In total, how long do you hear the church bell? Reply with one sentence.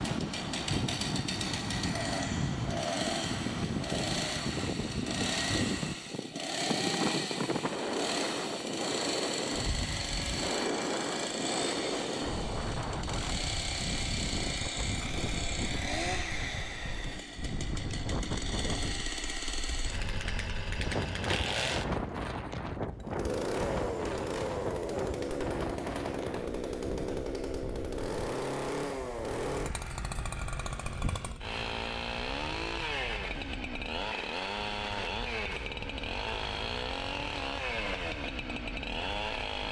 You can't hear the church bell here.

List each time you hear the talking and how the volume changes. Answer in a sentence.
The talking can't be heard in this clip.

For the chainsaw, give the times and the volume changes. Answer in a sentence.
You can hear the chainsaw from 0.0 to 39.6 s, at a steady volume.